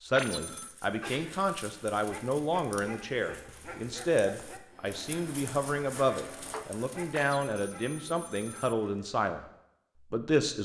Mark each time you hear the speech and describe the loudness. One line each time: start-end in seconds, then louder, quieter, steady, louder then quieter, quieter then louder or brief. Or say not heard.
0.0-9.4 steady
10.1-10.6 brief.